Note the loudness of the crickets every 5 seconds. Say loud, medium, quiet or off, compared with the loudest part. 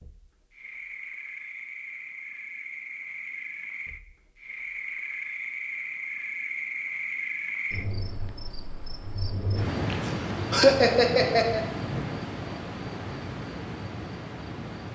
medium, loud, loud.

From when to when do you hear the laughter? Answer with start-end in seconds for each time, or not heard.
9.9-11.6.